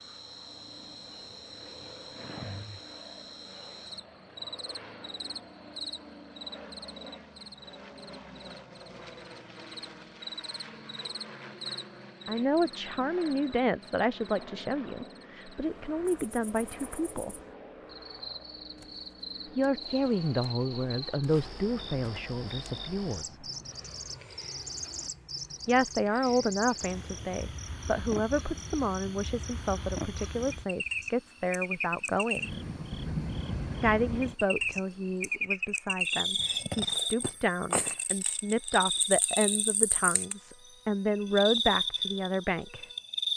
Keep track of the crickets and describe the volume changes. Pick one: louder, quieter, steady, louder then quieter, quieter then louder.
louder.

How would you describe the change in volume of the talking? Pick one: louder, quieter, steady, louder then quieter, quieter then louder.
steady.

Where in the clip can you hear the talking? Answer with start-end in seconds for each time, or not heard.
12.2-17.4, 19.6-23.4, 25.6-32.5, 33.8-42.9.